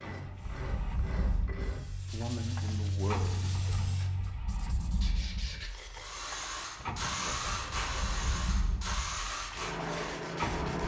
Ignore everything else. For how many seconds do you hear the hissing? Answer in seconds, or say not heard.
9 s.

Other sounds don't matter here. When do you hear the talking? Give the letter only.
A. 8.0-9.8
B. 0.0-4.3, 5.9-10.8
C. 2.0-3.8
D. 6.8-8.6
C.